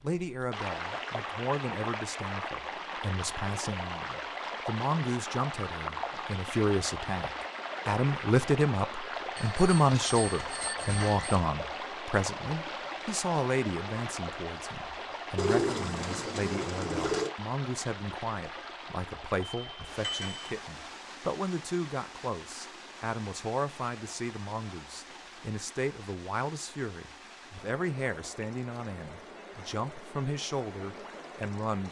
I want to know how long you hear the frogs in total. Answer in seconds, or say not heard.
not heard.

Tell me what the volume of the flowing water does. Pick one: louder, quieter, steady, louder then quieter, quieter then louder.
quieter.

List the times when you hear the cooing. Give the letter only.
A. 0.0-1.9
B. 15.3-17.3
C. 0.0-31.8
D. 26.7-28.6
B.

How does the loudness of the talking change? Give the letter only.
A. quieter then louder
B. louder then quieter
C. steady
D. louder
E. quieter
B.